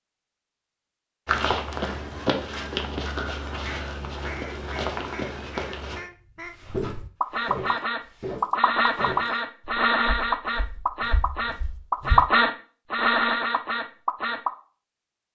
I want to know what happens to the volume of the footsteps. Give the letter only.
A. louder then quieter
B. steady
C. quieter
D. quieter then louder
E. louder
C.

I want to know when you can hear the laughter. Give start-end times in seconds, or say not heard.
not heard.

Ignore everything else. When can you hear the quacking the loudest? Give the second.
12 s.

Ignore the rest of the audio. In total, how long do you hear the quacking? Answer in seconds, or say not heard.
11 s.